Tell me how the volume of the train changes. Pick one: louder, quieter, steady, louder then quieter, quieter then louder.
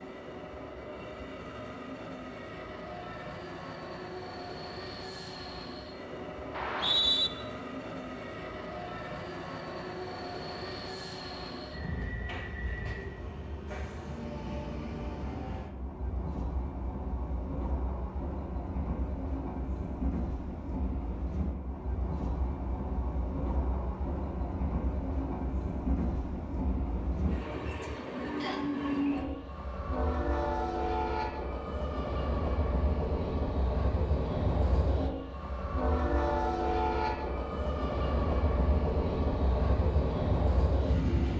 louder.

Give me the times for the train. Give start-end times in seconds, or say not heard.
0.0-41.3.